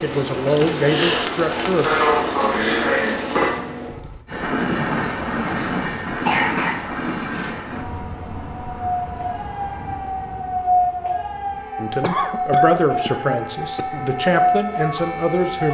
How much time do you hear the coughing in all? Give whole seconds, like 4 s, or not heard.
4 s.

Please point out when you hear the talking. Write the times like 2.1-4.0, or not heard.
0.0-1.9, 11.8-15.6.